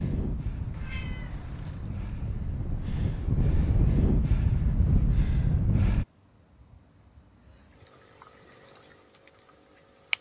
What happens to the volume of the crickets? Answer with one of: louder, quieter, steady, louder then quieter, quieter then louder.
quieter.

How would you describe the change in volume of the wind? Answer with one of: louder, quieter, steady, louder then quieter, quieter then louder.
louder.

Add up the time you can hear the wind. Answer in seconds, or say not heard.
6 s.